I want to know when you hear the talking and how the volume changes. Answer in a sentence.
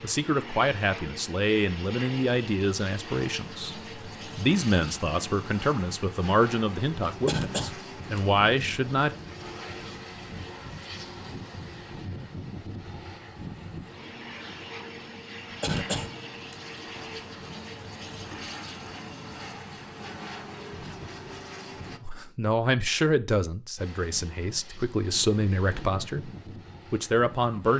The talking can be heard from 0.0 to 9.2 s, at a steady volume; from 22.0 to 26.3 s, getting quieter then louder; and briefly from 26.9 to 27.7 s.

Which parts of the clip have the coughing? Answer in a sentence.
You can hear the coughing from 7.2 to 8.2 s and from 15.6 to 16.6 s.